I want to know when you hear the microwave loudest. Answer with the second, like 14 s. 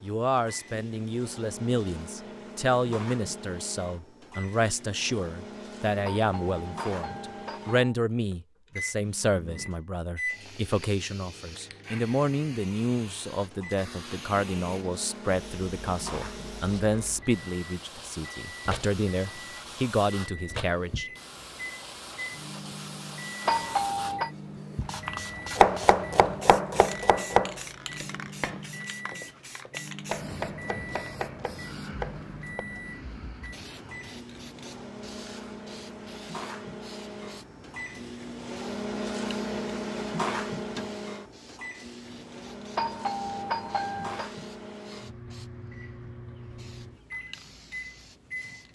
40 s.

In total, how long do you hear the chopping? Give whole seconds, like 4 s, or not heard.
7 s.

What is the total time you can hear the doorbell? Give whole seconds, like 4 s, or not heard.
4 s.